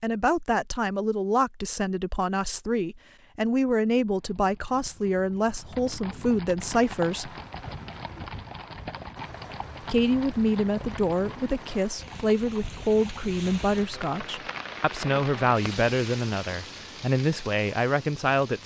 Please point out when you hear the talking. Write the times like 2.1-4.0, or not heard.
0.0-7.3, 9.8-18.6.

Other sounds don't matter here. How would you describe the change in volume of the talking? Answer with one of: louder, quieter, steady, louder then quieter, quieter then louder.
steady.